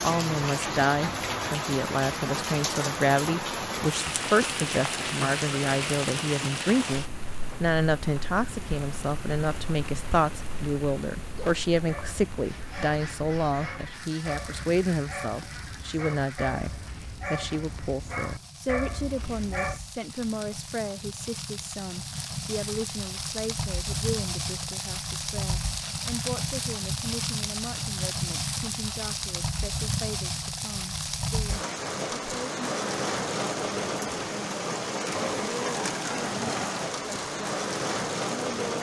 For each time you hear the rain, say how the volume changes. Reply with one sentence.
You can hear the rain from 0.0 to 38.7 s, getting quieter then louder.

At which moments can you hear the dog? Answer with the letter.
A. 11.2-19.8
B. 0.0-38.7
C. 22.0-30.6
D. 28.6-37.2
A.